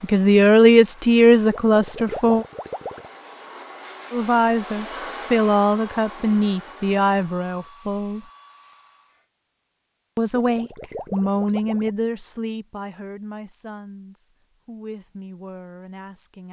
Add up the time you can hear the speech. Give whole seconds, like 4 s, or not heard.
13 s.